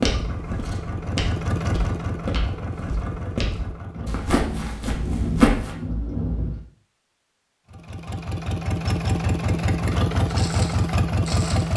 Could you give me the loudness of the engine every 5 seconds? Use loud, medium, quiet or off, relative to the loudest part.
medium, loud, loud.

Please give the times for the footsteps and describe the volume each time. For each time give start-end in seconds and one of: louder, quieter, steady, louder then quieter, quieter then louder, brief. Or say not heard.
0.0-5.8 quieter then louder
10.2-11.7 brief.